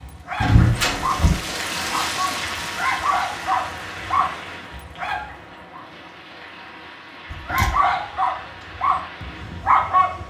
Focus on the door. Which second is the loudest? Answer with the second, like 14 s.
1 s.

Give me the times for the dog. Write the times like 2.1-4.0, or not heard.
0.0-5.8, 7.5-10.2.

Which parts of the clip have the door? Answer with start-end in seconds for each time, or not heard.
0.4-1.4, 7.3-7.8.